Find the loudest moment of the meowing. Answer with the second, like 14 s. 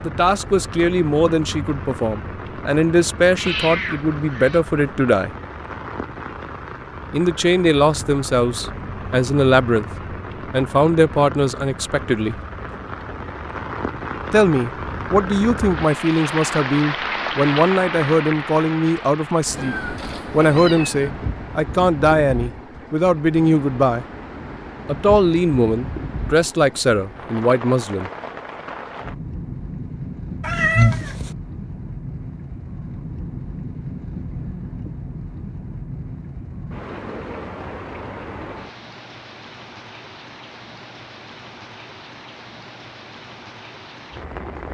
31 s.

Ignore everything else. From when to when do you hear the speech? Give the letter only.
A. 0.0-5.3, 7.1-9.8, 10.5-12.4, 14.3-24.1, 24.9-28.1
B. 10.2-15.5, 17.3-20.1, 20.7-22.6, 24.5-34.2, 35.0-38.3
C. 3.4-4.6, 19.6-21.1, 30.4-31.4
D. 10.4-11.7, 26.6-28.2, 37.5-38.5
A.